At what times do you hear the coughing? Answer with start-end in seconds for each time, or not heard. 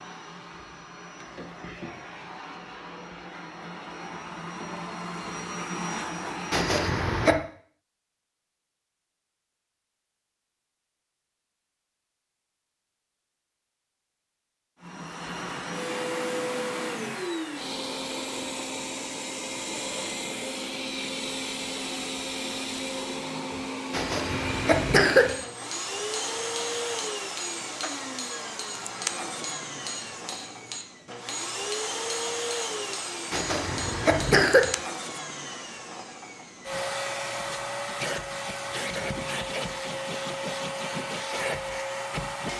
6.5-7.4, 23.9-25.4, 33.3-34.7.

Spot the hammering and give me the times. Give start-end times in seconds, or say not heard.
25.2-34.8.